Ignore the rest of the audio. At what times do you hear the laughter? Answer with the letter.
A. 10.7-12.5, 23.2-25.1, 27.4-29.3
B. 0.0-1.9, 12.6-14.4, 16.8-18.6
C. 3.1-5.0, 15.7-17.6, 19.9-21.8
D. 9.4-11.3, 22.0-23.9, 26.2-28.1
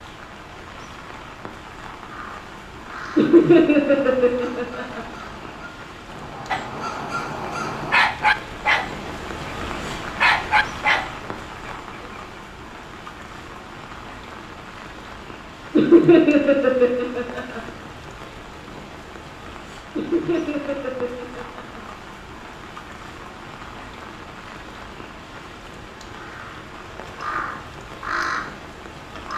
C.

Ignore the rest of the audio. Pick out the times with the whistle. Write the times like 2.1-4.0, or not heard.
not heard.